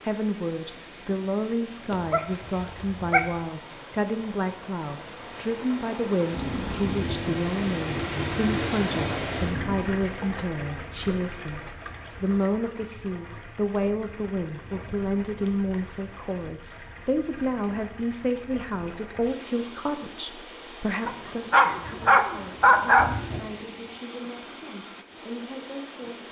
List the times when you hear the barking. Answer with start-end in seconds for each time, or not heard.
1.9-3.3, 21.1-23.1.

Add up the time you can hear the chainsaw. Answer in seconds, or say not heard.
not heard.